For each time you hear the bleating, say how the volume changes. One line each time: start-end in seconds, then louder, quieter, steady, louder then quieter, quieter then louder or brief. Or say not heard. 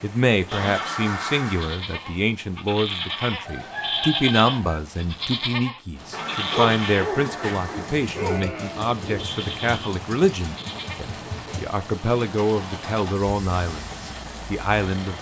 0.5-11.0 louder then quieter.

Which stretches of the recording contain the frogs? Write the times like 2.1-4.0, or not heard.
not heard.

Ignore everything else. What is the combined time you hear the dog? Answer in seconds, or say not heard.
3 s.